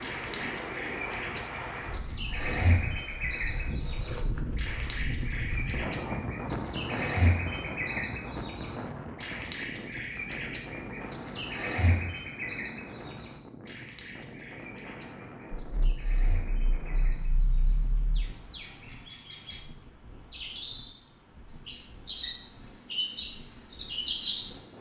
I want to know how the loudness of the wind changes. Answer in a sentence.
The volume of the wind goes down.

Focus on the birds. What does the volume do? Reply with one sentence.
The volume of the birds goes down, then up.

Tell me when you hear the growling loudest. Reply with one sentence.
The volume of the growling peaks at 18 seconds.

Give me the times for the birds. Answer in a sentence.
You can hear the birds from 0.0 to 24.6 s.